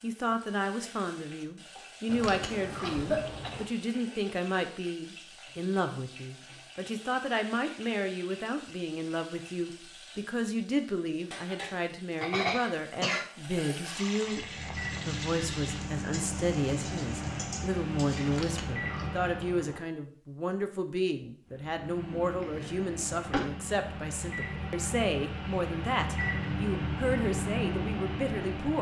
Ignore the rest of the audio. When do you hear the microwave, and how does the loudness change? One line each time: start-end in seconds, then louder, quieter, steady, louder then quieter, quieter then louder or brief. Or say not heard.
14.2-19.7 steady
21.4-28.7 louder.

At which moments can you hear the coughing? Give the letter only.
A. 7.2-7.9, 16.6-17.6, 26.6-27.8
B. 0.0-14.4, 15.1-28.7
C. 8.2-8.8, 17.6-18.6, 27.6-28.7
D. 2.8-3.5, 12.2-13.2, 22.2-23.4
D.